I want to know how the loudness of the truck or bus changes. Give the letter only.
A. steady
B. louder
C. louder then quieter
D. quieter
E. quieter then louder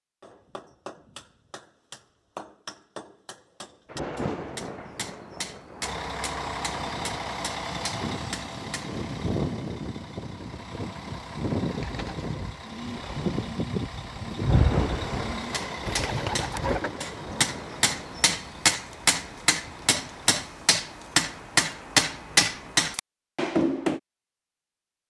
D.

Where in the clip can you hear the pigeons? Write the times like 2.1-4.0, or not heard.
11.6-17.1.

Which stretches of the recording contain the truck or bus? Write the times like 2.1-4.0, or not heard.
5.8-20.4.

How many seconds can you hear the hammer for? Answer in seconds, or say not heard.
17 s.